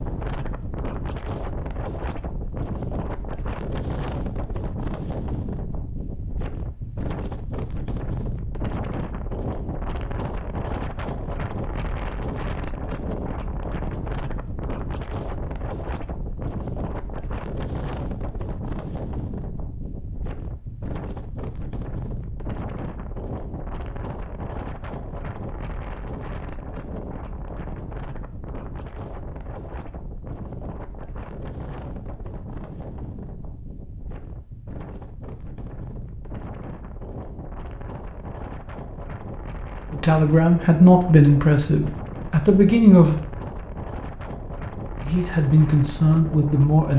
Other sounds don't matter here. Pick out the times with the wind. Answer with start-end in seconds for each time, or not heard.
0.0-46.9.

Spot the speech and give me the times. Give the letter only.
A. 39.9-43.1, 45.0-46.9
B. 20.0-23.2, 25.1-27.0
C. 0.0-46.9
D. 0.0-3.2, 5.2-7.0
A.